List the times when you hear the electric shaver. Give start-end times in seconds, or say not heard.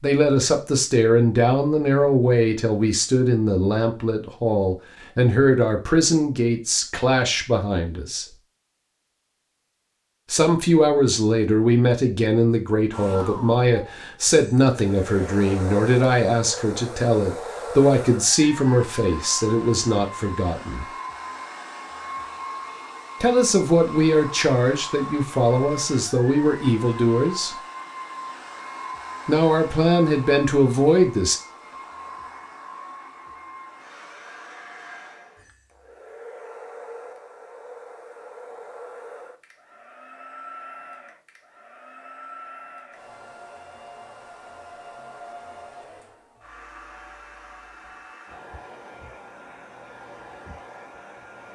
not heard.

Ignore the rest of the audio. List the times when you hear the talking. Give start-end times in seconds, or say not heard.
0.0-8.2, 10.3-20.9, 23.2-27.6, 29.2-31.4.